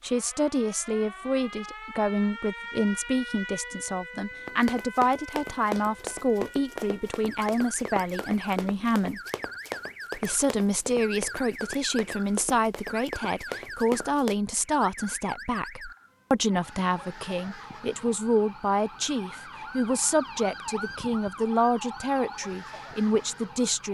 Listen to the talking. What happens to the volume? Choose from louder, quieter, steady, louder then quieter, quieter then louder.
steady.